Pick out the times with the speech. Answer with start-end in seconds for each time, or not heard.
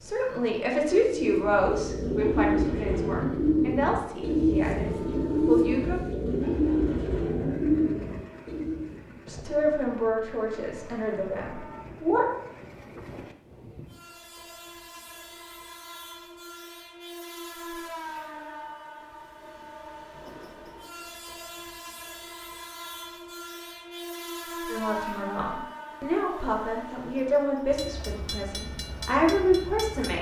0.0-6.0, 9.2-12.3, 24.7-30.1.